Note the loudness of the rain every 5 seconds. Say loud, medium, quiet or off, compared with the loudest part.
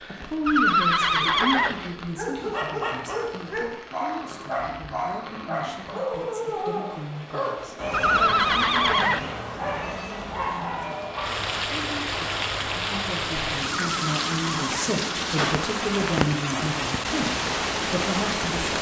quiet, quiet, loud, loud.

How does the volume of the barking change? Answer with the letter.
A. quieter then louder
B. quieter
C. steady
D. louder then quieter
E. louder
C.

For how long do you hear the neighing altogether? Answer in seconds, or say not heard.
4 s.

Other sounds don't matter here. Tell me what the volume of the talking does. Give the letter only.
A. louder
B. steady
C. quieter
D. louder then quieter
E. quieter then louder
E.